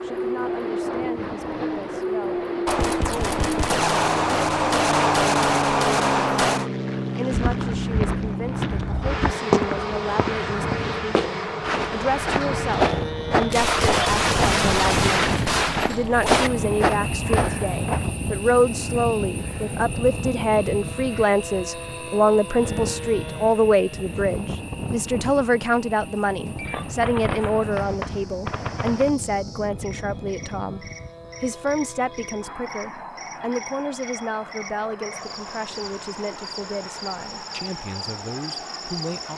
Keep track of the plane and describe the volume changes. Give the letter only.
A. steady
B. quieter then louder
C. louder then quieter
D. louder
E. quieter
E.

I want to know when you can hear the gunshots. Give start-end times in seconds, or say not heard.
2.6-6.7, 13.5-16.5, 26.6-29.1.